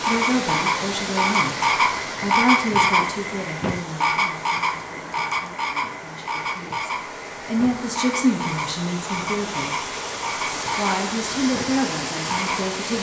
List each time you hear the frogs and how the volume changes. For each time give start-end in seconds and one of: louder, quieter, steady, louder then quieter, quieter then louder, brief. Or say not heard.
0.0-12.7 quieter.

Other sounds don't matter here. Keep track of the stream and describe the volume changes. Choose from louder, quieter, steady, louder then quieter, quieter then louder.
quieter then louder.